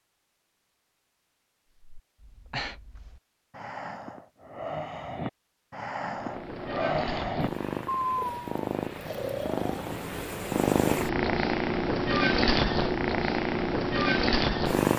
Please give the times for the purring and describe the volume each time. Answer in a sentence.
The purring can be heard from 6.1 to 14.9 s, getting louder.